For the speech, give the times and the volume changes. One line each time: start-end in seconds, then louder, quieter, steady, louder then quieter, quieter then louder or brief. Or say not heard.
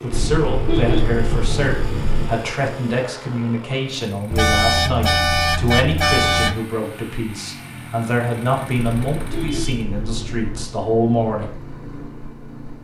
0.0-11.6 steady.